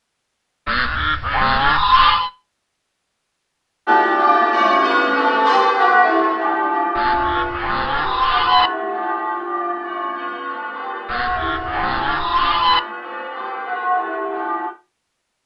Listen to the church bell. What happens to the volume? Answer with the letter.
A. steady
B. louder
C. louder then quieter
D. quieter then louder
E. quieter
E.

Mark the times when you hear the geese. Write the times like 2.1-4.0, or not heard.
0.7-2.3, 7.0-8.7, 11.1-12.8.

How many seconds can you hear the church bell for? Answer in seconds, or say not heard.
11 s.